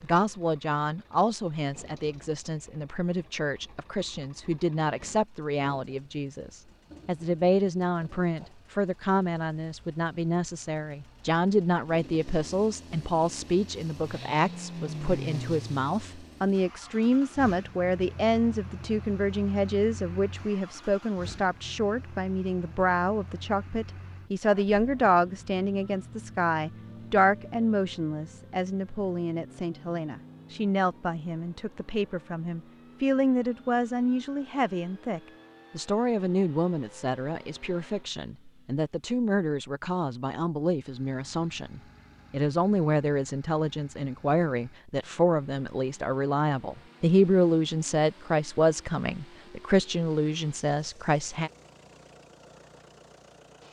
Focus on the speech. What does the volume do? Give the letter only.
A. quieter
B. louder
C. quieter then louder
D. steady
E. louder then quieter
D.